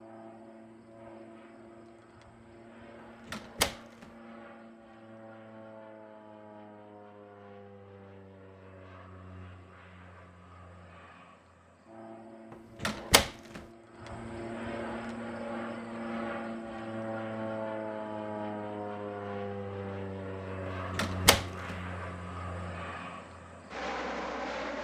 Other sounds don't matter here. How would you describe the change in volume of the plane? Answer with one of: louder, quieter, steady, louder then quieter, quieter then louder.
louder.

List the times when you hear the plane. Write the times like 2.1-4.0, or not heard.
0.0-24.8.